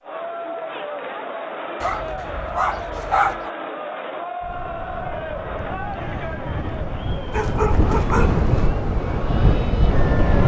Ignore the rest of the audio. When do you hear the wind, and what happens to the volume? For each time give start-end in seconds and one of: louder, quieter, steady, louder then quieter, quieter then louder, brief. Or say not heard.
4.4-10.4 louder.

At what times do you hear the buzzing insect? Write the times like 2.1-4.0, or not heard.
not heard.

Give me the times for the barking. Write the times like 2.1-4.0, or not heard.
1.8-3.5, 7.3-8.7.